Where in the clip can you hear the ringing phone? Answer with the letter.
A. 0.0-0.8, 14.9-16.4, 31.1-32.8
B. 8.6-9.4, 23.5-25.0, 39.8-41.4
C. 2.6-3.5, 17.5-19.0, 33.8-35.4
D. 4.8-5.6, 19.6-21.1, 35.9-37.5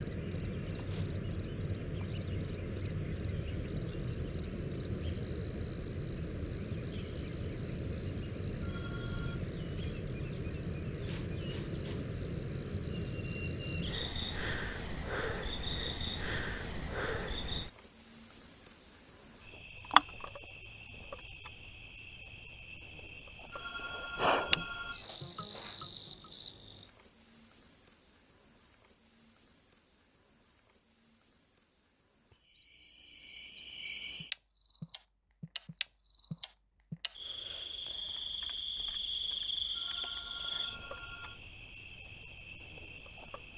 B.